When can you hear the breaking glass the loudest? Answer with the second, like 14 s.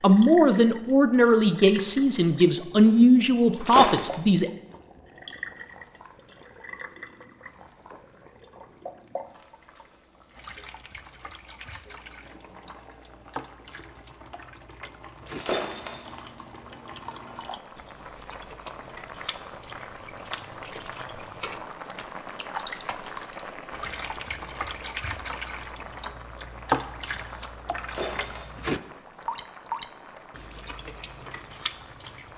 4 s.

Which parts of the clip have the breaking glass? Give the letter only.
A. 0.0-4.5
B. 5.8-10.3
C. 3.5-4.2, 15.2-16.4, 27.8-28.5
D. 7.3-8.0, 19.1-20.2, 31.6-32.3
C.